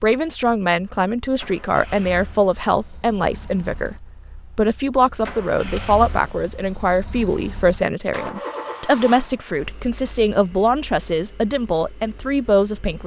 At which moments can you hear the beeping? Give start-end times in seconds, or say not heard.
not heard.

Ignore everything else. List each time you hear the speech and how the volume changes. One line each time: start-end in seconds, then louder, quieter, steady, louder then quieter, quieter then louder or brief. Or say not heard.
0.0-13.0 steady.